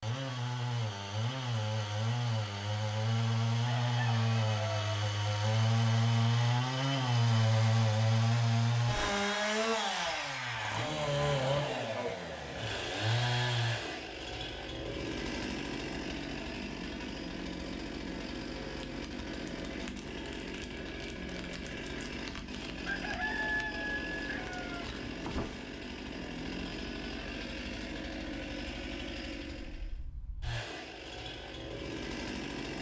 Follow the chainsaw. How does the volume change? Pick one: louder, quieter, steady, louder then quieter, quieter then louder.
quieter.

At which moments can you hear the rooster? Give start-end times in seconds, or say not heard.
3.6-5.0, 22.9-24.9.